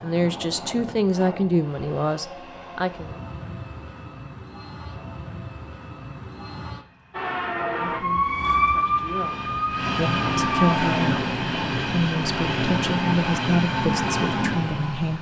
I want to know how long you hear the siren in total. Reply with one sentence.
You can hear the siren for 4 seconds altogether.